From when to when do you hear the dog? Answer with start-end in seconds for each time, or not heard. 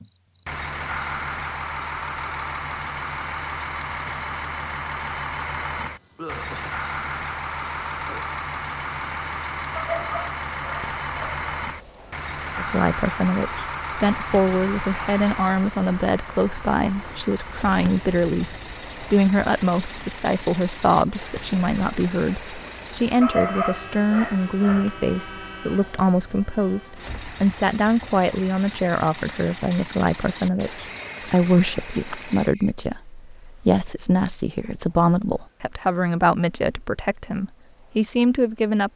9.8-11.4, 23.2-24.9.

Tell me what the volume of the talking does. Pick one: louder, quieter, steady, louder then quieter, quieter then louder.
steady.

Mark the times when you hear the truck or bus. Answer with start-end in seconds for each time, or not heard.
0.0-32.5.